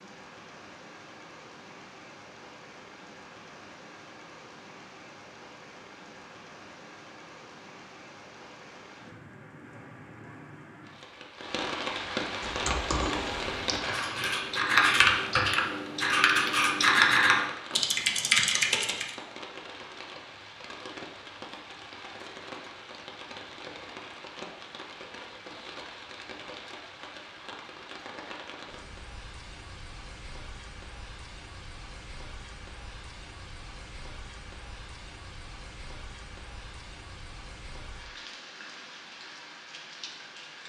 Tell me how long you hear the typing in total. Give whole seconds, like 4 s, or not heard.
7 s.